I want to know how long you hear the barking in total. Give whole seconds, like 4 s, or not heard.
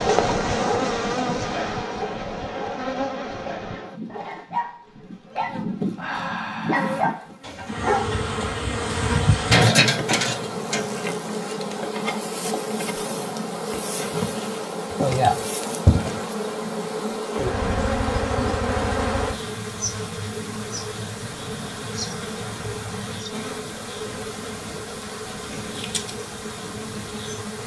8 s.